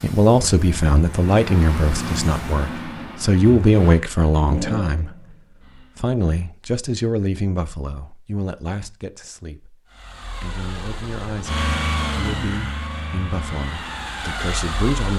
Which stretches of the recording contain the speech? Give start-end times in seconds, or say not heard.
0.0-15.1.